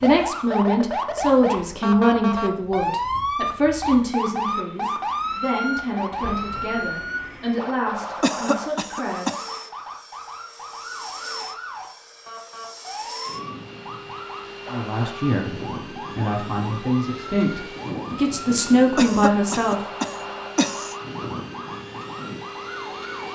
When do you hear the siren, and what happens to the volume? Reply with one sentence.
You can hear the siren from 0.0 to 23.3 s, getting quieter.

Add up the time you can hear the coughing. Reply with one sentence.
You can hear the coughing for 3 seconds altogether.